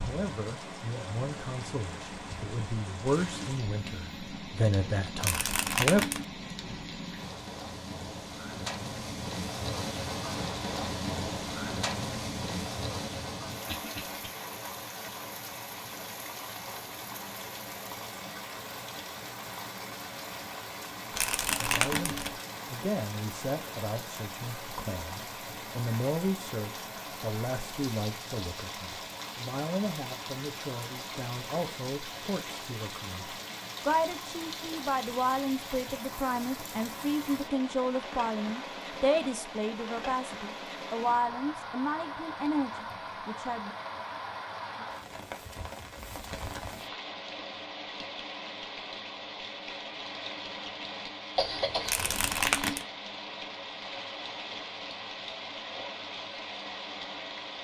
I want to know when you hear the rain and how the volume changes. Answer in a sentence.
You can hear the rain from 0.0 to 57.5 s, at a steady volume.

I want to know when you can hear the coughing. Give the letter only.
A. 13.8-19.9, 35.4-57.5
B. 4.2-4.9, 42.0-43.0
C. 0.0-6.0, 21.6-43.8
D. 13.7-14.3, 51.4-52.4
D.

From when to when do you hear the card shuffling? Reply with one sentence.
You can hear the card shuffling from 5.2 to 6.2 s, from 21.1 to 22.4 s and from 51.9 to 52.9 s.